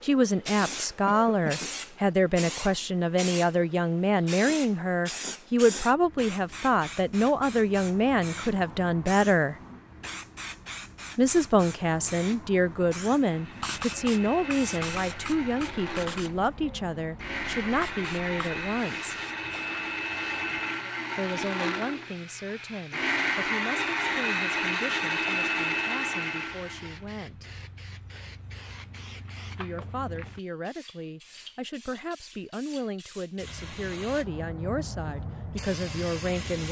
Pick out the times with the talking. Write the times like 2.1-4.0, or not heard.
0.0-9.6, 11.2-19.1, 21.1-27.4, 29.6-36.6.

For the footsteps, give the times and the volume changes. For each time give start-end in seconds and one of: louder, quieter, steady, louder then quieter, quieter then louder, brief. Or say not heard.
not heard.